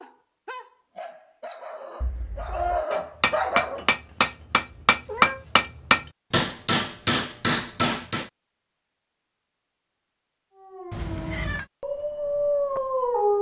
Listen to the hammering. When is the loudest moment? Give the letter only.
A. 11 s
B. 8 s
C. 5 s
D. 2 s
C.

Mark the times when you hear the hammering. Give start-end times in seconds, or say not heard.
2.9-8.3.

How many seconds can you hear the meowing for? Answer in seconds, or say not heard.
2 s.